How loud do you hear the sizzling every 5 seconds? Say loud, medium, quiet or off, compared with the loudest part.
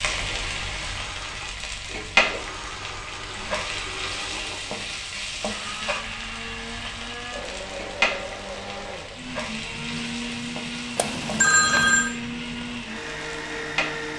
loud, loud, medium.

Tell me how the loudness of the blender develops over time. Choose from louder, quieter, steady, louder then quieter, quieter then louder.
louder.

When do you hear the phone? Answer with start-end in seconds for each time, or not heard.
10.9-12.1.